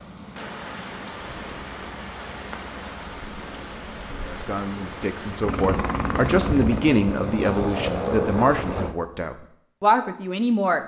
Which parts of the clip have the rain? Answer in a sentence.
You can hear the rain from 0.1 to 5.5 s.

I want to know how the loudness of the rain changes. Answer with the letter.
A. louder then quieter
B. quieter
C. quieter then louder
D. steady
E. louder
D.